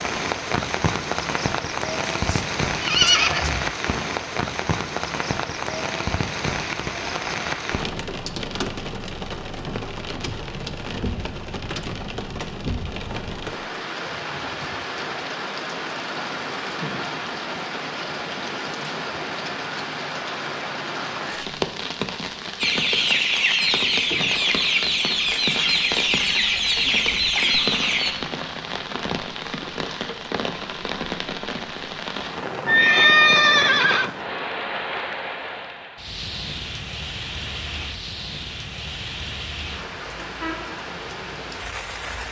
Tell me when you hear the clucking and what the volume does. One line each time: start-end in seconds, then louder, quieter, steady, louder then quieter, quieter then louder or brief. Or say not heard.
22.6-28.1 steady.